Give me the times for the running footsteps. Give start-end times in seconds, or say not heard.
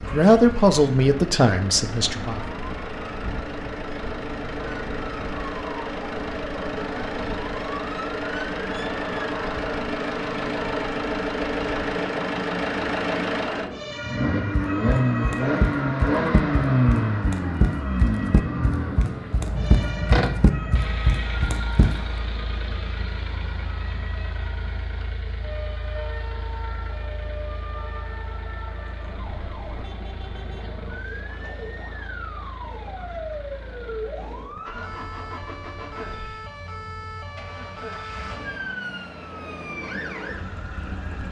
14.6-22.1.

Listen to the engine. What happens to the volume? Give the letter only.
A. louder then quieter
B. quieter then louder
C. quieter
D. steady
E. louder
A.